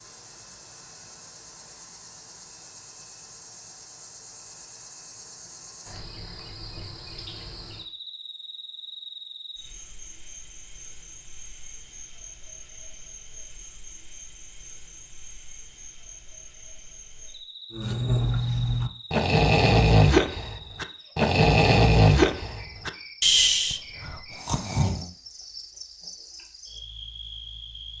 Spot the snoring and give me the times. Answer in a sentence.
The snoring can be heard from 17.7 to 25.1 s.